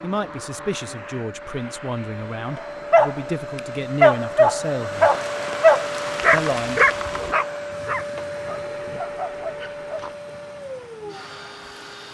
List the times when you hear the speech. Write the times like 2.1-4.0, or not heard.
0.0-5.1, 6.3-6.8.